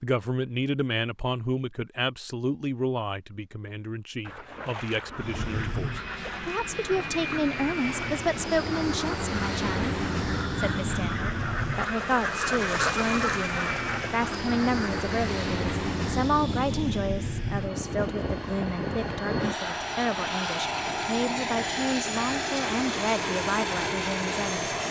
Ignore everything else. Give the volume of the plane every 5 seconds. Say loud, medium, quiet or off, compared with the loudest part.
off, loud, loud, loud, loud.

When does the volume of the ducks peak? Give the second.
13 s.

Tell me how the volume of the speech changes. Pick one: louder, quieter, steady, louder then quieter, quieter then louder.
steady.